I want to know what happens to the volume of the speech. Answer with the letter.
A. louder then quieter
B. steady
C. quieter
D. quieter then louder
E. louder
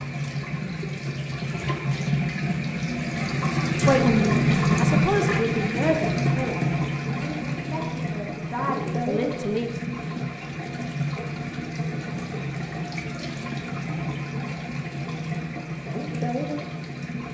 D.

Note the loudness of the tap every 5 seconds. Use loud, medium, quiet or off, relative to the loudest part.
loud, loud, medium, medium.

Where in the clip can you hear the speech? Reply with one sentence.
You can hear the speech from 3.8 to 9.7 s.